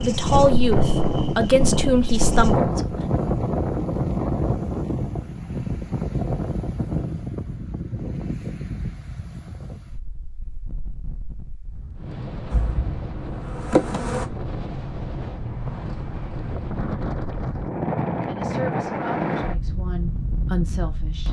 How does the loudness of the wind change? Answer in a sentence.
The loudness of the wind goes down, then up.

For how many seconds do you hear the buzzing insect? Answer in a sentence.
You can hear the buzzing insect for 4 seconds altogether.